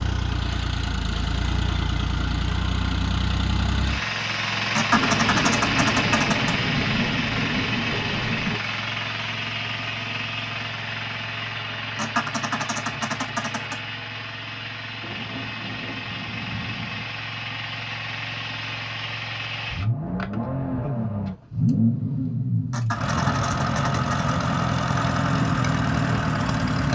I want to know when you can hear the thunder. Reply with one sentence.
The thunder can be heard from 4.9 to 8.6 s and from 15.0 to 17.1 s.